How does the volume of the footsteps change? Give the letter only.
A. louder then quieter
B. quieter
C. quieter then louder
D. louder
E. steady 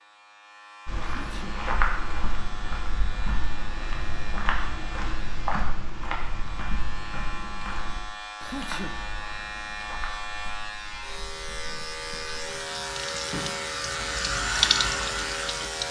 B.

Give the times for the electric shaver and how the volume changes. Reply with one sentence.
The electric shaver can be heard from 0.0 to 15.8 s, getting louder.